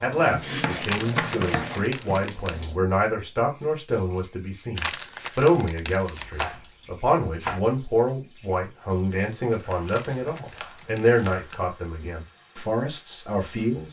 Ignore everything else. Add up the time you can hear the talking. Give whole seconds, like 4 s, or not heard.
14 s.